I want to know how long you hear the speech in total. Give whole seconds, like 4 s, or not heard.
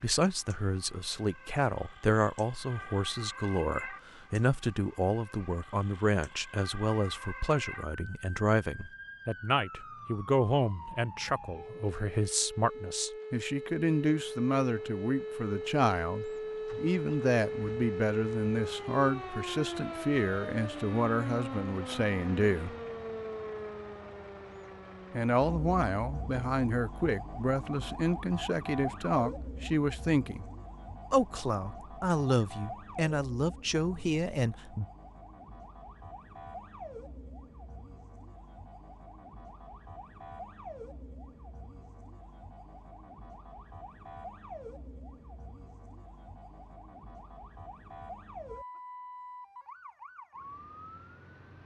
32 s.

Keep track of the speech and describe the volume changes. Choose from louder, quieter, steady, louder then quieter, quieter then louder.
steady.